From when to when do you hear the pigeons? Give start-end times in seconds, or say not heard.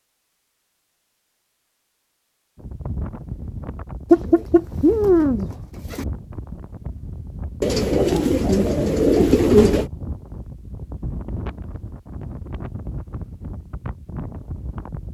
4.1-6.0, 7.6-9.9.